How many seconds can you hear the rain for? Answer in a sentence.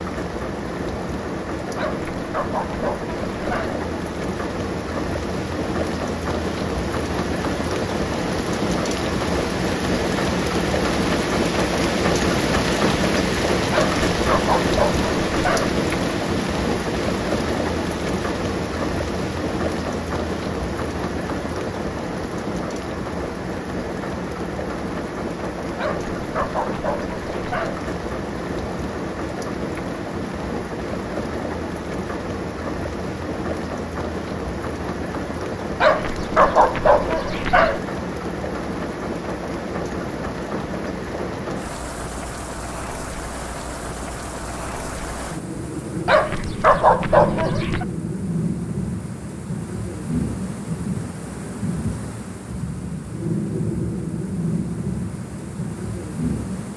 You can hear the rain for 57 seconds altogether.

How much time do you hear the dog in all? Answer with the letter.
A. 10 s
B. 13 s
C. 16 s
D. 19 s
A.